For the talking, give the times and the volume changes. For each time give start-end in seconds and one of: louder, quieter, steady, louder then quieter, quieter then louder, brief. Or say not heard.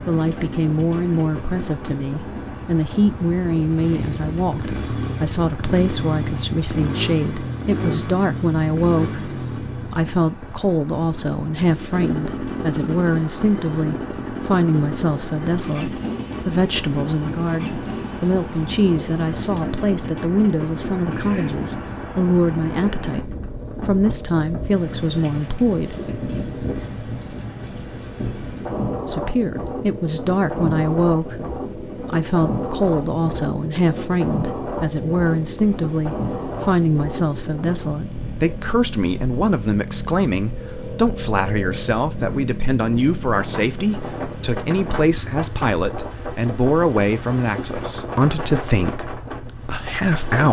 0.1-25.9 steady
29.1-50.4 steady.